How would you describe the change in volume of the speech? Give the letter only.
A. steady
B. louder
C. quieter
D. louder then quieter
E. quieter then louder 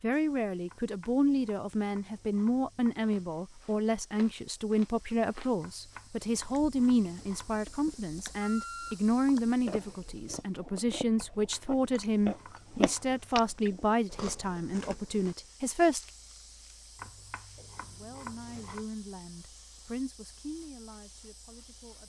C.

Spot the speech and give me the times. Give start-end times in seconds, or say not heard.
0.0-16.1, 17.9-22.0.